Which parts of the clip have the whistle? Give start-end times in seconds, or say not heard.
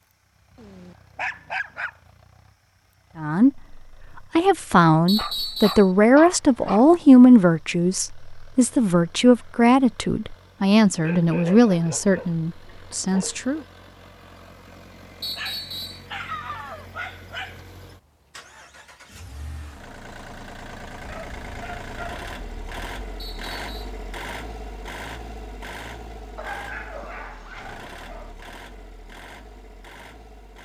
5.0-5.9, 15.2-16.1, 23.1-23.9.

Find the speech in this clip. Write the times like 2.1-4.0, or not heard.
3.1-13.6.